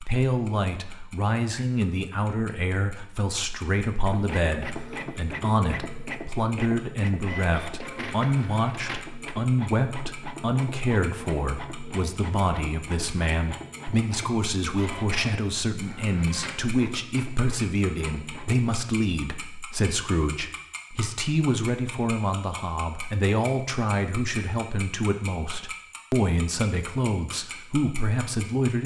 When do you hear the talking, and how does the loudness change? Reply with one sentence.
The talking can be heard from 0.0 to 28.8 s, at a steady volume.